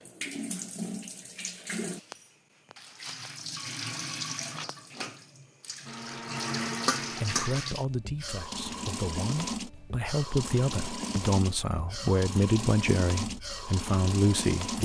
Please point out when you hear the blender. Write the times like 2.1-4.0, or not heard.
5.8-7.6.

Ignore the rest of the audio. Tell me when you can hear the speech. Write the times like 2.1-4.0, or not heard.
7.2-14.8.